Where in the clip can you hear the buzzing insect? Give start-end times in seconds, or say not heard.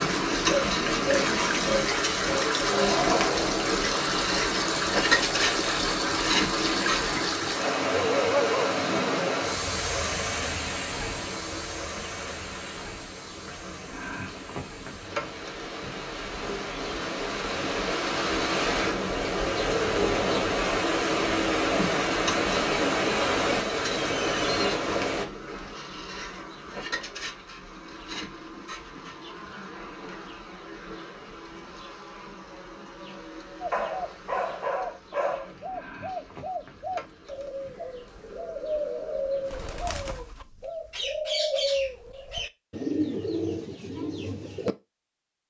0.0-7.3, 11.1-40.0.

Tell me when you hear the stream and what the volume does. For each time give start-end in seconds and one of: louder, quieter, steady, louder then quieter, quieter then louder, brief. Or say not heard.
0.0-25.2 quieter then louder.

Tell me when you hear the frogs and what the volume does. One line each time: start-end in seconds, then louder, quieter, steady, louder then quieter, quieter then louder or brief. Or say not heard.
not heard.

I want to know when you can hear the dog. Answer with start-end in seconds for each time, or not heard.
8.2-9.3, 33.7-35.5.